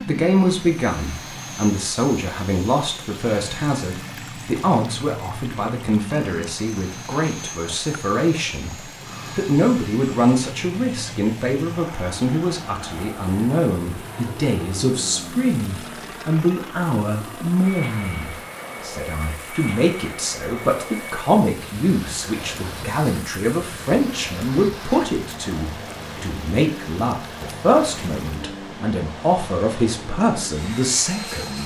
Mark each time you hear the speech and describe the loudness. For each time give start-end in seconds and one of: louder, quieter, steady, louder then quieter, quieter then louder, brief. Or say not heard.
0.1-31.6 steady.